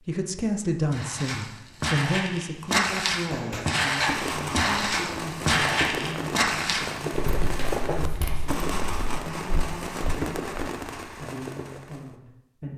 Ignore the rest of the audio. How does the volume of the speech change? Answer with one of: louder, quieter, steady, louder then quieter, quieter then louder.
quieter.